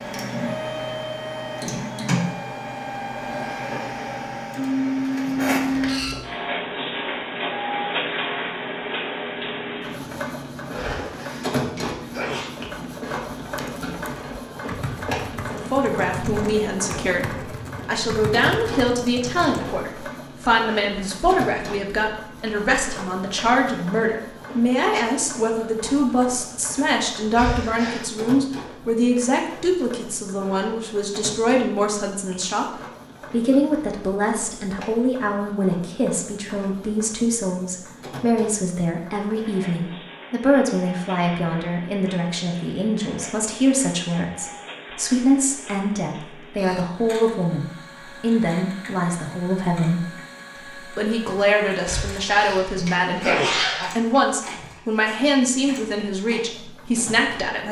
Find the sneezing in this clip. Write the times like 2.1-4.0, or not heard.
10.8-12.5, 27.4-28.1, 51.9-53.9.